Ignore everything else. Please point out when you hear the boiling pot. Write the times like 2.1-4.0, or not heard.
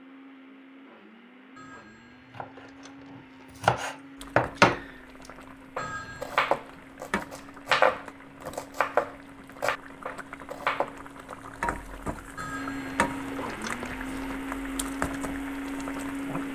4.2-16.5.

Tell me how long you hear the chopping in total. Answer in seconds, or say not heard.
8 s.